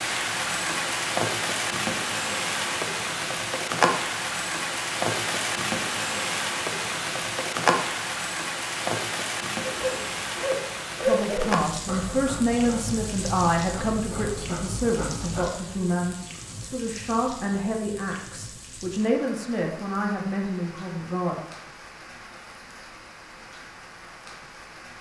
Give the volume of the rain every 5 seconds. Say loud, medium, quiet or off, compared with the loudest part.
loud, loud, medium, quiet, quiet.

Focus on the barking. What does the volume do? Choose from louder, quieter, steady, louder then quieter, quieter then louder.
louder then quieter.